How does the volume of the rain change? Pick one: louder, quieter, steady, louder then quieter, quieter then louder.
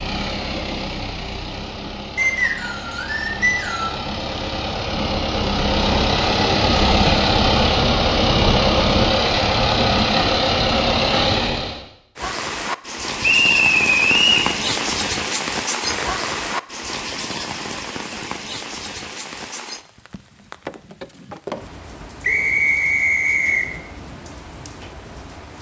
quieter.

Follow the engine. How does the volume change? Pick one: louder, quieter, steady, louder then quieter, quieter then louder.
louder.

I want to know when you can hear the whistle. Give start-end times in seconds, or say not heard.
2.1-4.0, 13.2-14.5, 22.2-23.6.